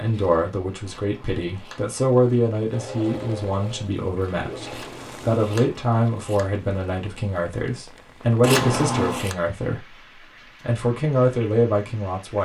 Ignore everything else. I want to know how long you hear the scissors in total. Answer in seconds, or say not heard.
4 s.